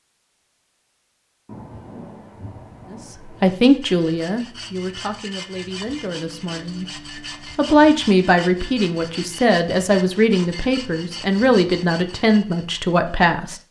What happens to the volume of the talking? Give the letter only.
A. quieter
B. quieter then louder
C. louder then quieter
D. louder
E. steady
E.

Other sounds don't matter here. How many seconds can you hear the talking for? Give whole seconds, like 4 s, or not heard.
10 s.